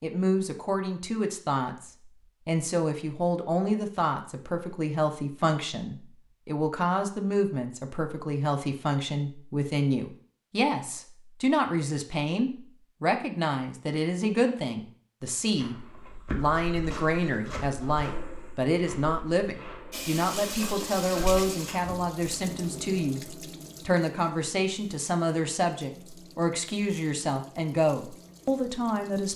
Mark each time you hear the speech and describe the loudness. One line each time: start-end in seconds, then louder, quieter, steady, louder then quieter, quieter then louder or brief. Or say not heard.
0.0-29.3 steady.